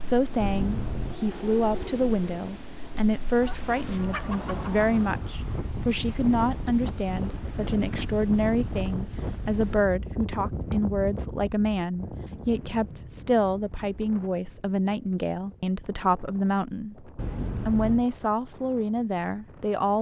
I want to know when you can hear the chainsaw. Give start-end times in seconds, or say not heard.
not heard.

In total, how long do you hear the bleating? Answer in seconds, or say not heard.
not heard.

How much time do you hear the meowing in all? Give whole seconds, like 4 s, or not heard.
2 s.